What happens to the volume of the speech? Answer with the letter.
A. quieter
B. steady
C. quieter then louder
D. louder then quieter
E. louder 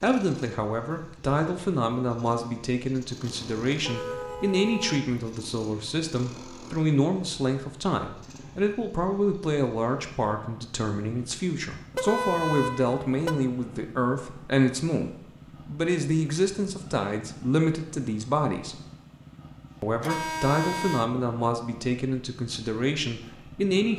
B.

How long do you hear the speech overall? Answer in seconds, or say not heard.
23 s.